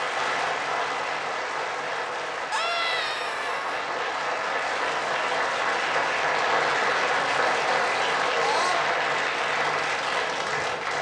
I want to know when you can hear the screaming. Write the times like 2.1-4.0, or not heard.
2.5-3.6, 8.3-8.9.